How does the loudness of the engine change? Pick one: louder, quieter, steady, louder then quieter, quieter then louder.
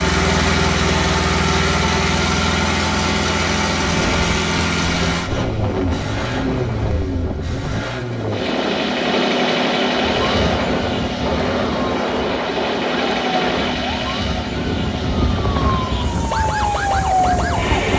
quieter.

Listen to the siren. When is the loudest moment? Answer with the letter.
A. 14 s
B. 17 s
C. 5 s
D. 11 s
B.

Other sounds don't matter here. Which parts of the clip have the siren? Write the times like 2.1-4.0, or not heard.
10.0-17.9.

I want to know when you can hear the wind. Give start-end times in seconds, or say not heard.
3.8-17.9.